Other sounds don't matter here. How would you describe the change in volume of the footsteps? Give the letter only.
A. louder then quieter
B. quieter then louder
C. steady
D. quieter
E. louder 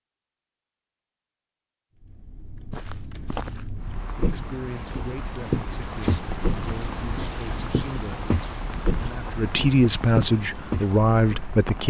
E.